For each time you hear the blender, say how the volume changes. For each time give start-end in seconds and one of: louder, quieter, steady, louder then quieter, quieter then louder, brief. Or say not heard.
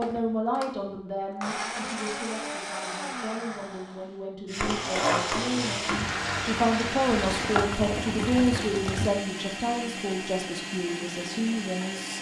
0.0-12.1 steady.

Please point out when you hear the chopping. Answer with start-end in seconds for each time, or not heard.
not heard.